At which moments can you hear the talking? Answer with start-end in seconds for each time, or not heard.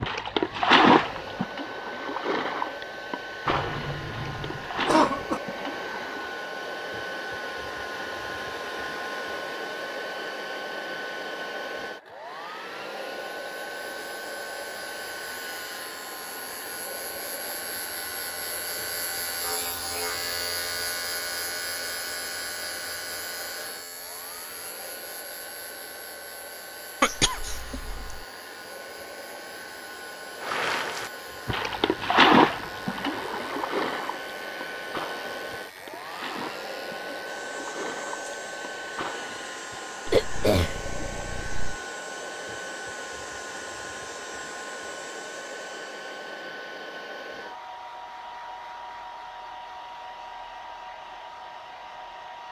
not heard.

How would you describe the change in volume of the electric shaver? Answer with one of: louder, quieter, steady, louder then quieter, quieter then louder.
quieter.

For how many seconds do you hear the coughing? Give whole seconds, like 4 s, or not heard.
5 s.